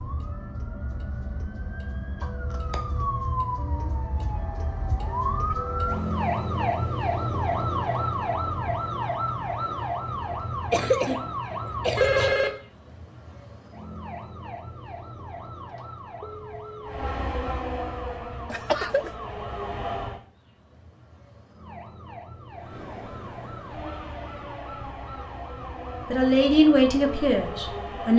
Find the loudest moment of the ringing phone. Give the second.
12 s.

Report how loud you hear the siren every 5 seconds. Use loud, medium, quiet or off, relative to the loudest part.
medium, loud, medium, quiet, quiet, quiet.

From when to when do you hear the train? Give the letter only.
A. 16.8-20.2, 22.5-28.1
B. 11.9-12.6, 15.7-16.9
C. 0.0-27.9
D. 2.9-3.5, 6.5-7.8
A.